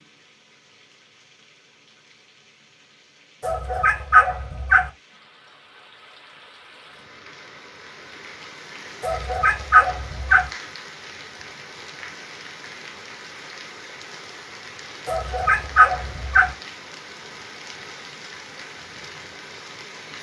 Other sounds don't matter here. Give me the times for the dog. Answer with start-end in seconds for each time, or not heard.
3.4-4.9, 9.0-10.5, 15.1-16.6.